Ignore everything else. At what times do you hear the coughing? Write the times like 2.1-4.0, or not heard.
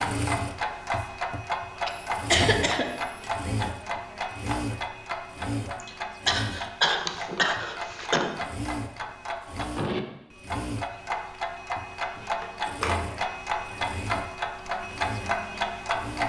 1.9-3.3, 5.8-8.3, 12.4-13.0.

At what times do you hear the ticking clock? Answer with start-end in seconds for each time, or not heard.
0.0-16.2.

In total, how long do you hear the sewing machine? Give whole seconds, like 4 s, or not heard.
16 s.